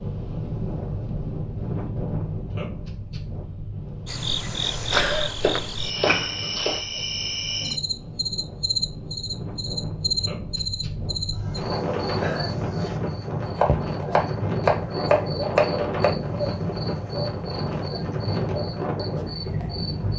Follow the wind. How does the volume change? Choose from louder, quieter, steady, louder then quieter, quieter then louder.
quieter then louder.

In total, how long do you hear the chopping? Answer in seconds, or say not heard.
4 s.